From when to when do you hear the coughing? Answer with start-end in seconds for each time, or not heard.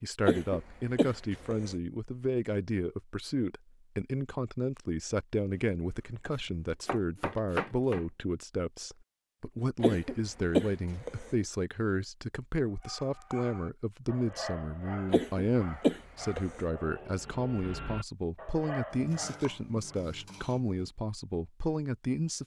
0.2-1.7, 9.8-11.3, 15.1-16.6.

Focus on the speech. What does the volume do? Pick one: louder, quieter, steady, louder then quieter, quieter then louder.
steady.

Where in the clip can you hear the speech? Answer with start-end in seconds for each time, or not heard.
0.0-22.4.